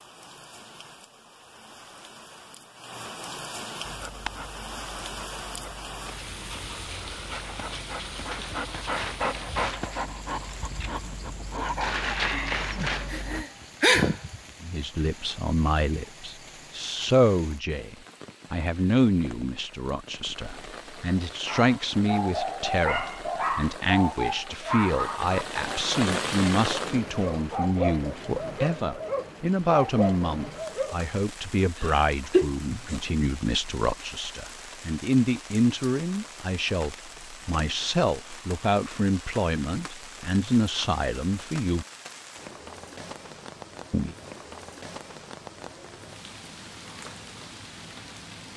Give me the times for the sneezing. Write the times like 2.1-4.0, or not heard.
13.1-14.3, 31.8-32.5.